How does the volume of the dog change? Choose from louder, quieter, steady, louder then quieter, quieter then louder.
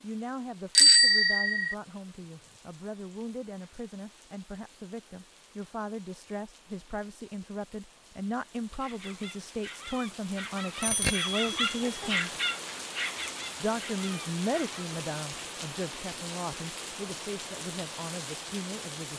louder then quieter.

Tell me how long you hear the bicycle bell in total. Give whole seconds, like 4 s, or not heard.
2 s.